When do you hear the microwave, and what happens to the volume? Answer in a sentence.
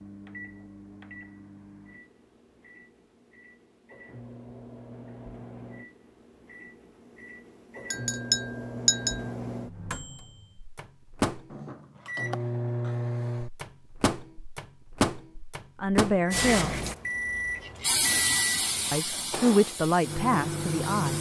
The microwave can be heard from 0.0 to 21.1 s, getting louder.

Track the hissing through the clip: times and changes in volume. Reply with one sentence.
The hissing can be heard from 16.3 to 21.1 s, getting louder then quieter.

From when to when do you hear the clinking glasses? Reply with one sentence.
The clinking glasses can be heard from 7.9 to 9.2 s.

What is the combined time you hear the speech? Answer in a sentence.
The speech can be heard for 3 seconds in total.